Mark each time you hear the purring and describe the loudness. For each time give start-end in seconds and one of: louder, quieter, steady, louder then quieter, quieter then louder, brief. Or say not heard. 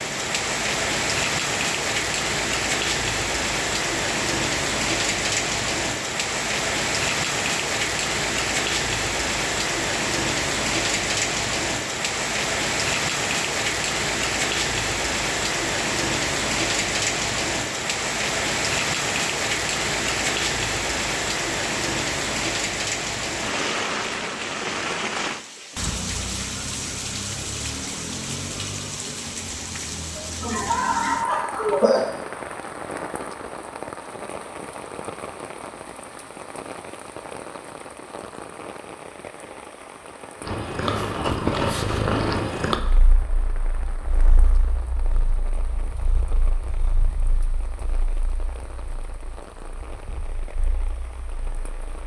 40.4-51.8 quieter.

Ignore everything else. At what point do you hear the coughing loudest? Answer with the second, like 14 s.
32 s.